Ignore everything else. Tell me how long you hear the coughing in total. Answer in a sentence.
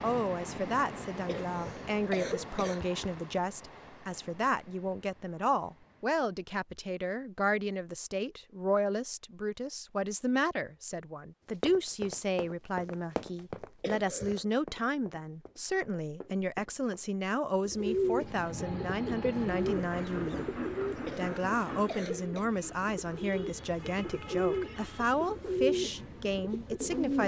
You can hear the coughing for 4 seconds altogether.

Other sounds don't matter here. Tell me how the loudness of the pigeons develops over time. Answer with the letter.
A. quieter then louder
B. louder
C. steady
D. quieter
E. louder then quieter
A.